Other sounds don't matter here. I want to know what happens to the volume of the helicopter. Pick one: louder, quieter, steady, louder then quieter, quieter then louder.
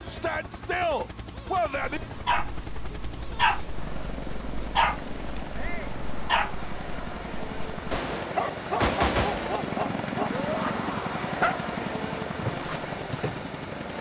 louder.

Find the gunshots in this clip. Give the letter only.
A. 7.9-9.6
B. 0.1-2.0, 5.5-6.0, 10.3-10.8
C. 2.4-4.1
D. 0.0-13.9
A.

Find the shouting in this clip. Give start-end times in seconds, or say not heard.
0.1-2.0, 5.5-6.0, 10.3-10.8.